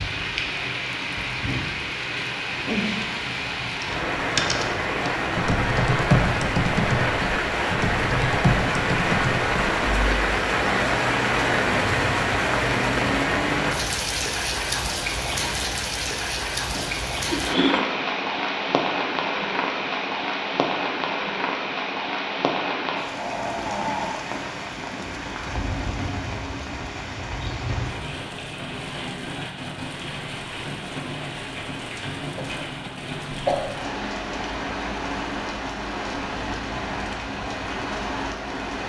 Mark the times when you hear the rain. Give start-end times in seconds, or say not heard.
0.0-38.8.